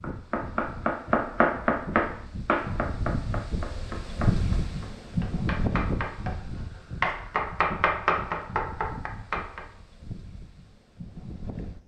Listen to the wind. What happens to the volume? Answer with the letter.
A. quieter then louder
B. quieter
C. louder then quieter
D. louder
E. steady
C.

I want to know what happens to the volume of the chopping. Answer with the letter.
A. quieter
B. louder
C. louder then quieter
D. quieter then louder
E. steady
D.